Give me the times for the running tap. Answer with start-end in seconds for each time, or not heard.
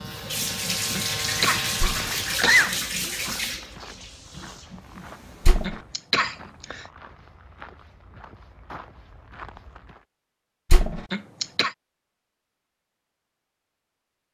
0.0-5.7.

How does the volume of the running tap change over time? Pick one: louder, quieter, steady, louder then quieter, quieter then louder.
quieter.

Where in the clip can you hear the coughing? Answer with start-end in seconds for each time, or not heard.
0.9-2.8, 5.6-6.8, 11.1-11.8.